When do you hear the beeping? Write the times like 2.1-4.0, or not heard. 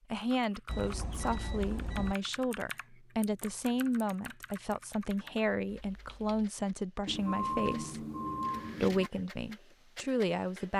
0.7-2.1, 7.0-9.1.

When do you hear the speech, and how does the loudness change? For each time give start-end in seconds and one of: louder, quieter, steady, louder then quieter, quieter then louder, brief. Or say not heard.
0.1-8.1 steady
8.8-10.7 brief.